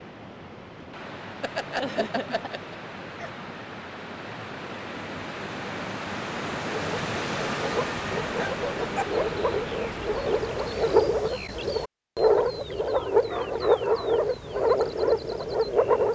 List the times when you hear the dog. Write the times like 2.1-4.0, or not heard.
1.4-3.4, 8.3-9.1, 12.9-14.2.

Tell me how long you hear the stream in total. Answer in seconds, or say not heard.
11 s.